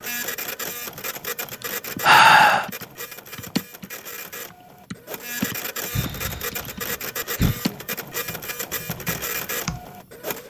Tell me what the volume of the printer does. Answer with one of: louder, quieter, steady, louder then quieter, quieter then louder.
quieter then louder.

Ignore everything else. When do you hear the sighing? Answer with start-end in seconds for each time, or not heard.
1.6-2.7, 5.9-7.6.